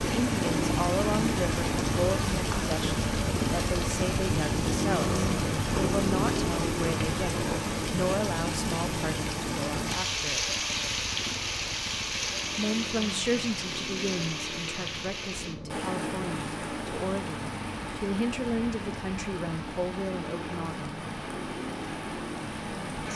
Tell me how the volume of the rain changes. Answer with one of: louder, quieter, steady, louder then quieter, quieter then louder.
quieter.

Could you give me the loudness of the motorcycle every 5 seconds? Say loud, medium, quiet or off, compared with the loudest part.
loud, loud, medium, medium, medium.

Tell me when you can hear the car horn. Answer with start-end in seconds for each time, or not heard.
not heard.